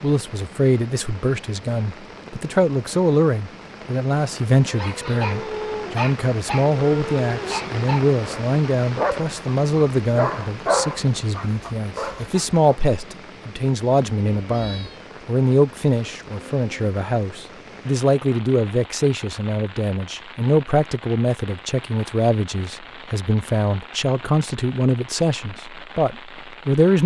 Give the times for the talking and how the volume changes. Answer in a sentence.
You can hear the talking from 0.0 to 27.0 s, at a steady volume.